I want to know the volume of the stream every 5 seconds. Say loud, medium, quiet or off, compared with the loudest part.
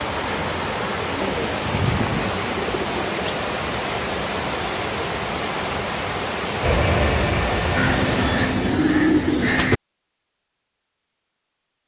loud, loud, off.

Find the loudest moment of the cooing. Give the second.
9 s.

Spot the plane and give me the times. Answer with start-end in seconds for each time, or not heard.
6.6-8.8.